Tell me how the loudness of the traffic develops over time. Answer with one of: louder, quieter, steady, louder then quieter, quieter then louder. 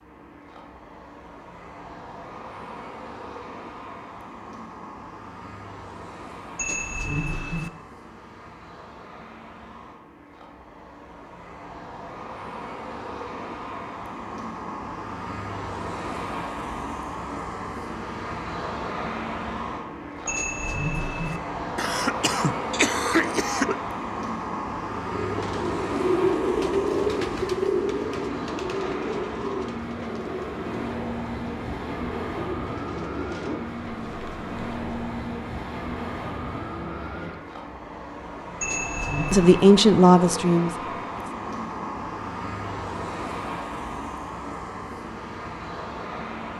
louder.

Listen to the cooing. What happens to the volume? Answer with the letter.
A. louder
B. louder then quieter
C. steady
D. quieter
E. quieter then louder
D.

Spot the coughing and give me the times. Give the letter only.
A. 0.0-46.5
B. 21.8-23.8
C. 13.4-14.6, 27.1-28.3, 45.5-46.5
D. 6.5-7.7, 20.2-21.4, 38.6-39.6
B.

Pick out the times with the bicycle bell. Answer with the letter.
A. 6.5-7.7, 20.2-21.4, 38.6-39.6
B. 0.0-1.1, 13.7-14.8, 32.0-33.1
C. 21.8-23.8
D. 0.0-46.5
A.